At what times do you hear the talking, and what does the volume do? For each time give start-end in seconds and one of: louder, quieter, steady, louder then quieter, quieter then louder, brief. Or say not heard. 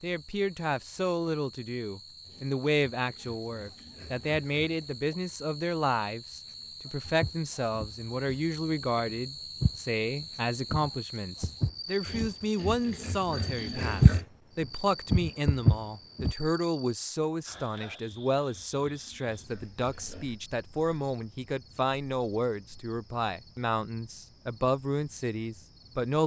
0.0-26.2 steady.